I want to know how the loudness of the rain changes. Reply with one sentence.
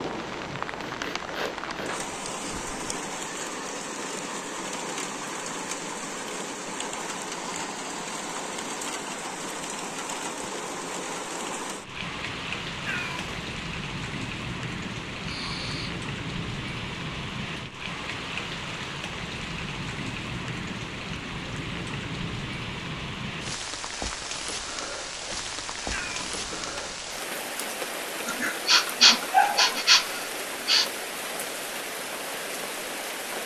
The loudness of the rain stays about the same.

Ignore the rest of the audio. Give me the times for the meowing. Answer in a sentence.
You can hear the meowing from 12.8 to 13.4 s and from 25.9 to 27.1 s.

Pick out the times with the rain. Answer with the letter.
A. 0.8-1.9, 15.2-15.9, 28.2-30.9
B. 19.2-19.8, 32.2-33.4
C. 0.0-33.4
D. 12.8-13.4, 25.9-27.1
C.